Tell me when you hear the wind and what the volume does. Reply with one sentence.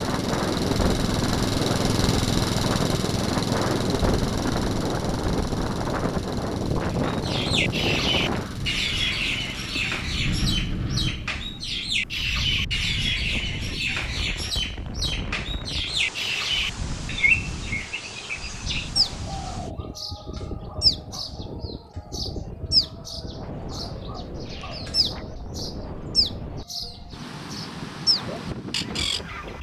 The wind can be heard from 0.0 to 29.5 s, getting quieter.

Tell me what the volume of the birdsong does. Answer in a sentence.
The volume of the birdsong stays about the same.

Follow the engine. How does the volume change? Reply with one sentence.
The volume of the engine goes down.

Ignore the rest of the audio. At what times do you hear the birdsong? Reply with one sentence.
You can hear the birdsong from 7.0 to 29.5 s.